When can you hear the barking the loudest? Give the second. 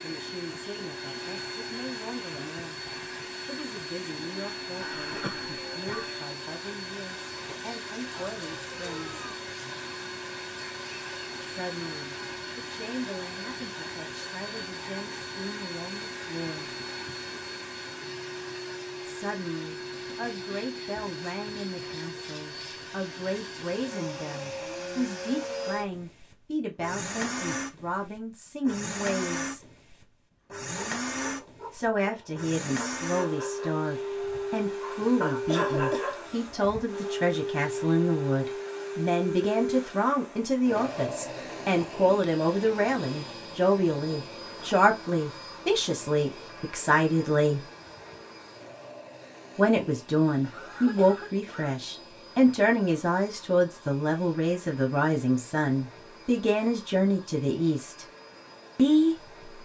36 s.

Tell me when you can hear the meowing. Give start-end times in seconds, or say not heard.
8.2-9.4.